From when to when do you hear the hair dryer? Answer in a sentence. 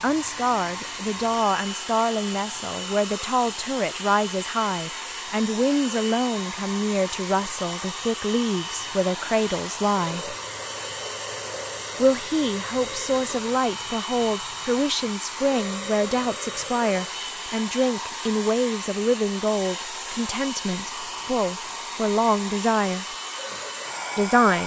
The hair dryer can be heard from 0.0 to 24.6 s.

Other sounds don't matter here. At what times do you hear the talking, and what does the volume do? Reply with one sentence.
You can hear the talking from 0.0 to 10.3 s, at a steady volume; from 11.9 to 23.1 s, at a steady volume; and briefly from 24.1 to 24.6 s.